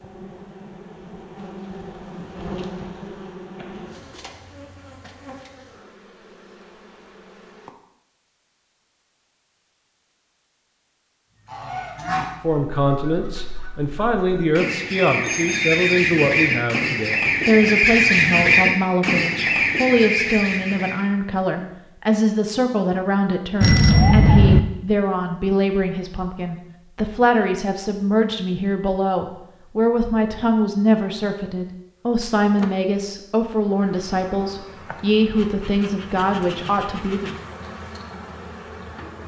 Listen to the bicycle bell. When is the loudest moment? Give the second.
24 s.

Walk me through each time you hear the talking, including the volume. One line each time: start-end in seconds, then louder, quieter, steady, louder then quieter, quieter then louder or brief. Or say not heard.
12.4-37.3 steady.